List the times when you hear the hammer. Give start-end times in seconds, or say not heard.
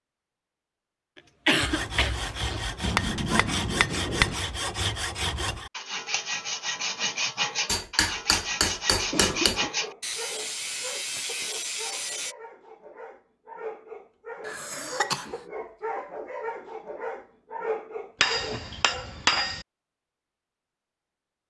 2.8-4.4, 7.7-9.7, 18.2-19.6.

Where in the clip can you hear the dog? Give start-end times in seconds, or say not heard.
9.7-19.1.